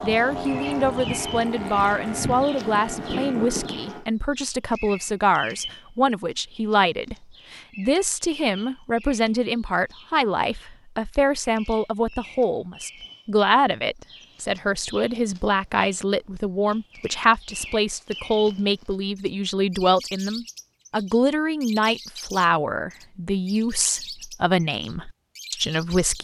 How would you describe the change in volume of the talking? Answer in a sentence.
The volume of the talking stays about the same.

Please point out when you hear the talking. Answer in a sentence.
You can hear the talking from 0.0 to 26.2 s.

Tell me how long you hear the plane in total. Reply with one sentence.
The plane can be heard for 4 seconds in total.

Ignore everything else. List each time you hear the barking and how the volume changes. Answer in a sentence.
You can't hear the barking here.